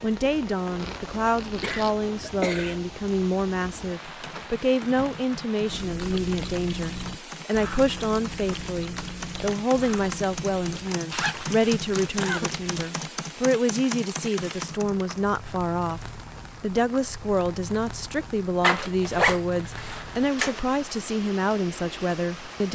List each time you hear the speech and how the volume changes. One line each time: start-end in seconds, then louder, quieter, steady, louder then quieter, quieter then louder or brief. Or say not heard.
0.0-22.7 steady.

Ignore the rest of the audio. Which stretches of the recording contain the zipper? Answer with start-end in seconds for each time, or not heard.
0.8-1.9, 11.1-12.9, 18.6-20.6.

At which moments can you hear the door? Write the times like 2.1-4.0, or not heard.
not heard.